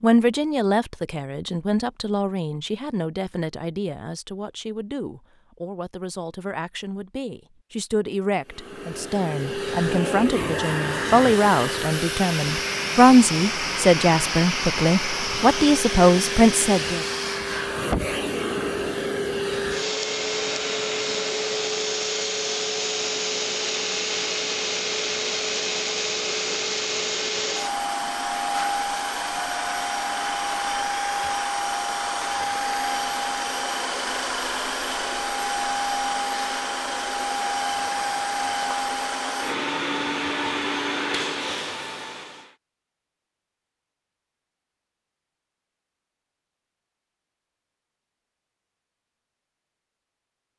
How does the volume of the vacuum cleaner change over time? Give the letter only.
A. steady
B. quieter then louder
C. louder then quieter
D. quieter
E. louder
A.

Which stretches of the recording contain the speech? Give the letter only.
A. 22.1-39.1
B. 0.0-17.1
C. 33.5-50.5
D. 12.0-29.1
B.